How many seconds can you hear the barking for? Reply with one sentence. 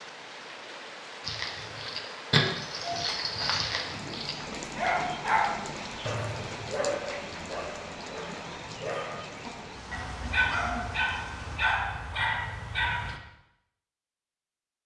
The barking can be heard for 12 seconds in total.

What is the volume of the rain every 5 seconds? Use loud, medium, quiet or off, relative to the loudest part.
loud, loud, medium.